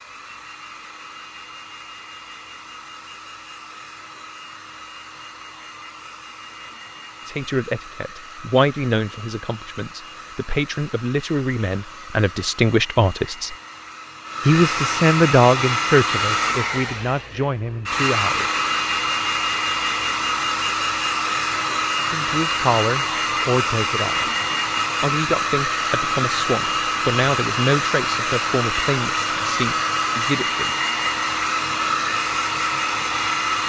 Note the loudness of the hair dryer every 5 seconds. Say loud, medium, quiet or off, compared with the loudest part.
quiet, quiet, medium, loud, loud, loud, loud.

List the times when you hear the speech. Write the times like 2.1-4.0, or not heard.
7.2-13.5, 14.4-18.6, 21.9-24.3, 25.0-30.7.